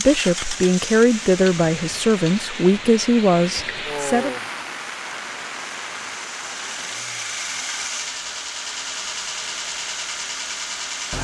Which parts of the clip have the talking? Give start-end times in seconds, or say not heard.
0.0-4.3.